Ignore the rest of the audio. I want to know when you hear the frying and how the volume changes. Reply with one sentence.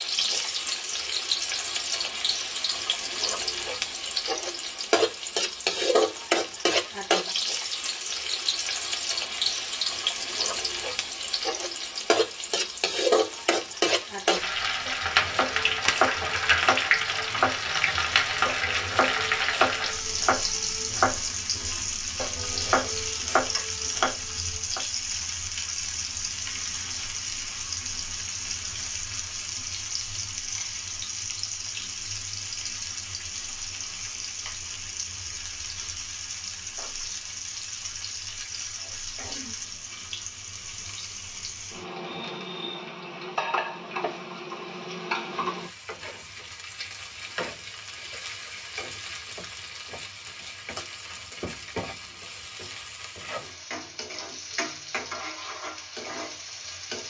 The frying can be heard from 0.0 to 57.0 s, getting quieter.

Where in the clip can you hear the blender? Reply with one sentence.
The blender can't be heard in this clip.